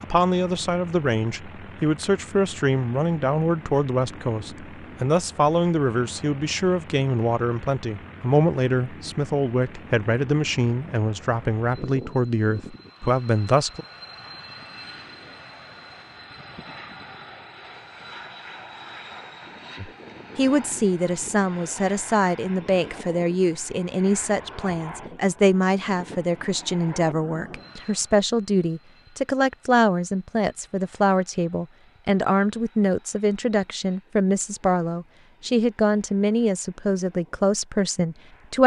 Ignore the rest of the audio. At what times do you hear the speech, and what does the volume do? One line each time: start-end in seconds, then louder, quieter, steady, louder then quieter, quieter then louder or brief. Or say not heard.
0.0-13.8 steady
19.8-38.6 steady.